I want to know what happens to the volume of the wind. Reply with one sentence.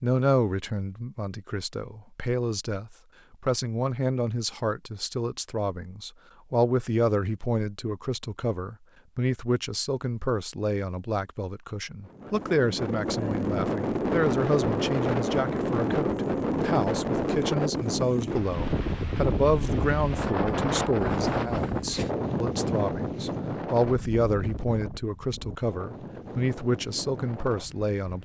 The volume of the wind goes down.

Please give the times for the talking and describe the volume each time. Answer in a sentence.
You can hear the talking from 0.0 to 28.2 s, at a steady volume.